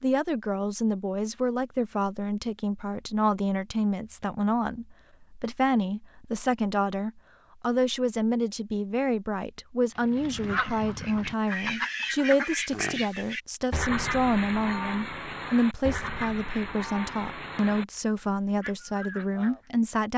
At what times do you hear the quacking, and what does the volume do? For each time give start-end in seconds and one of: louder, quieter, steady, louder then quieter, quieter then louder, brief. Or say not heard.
9.9-19.6 quieter.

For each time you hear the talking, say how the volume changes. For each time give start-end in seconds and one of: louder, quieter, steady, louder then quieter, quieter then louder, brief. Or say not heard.
0.0-20.1 steady.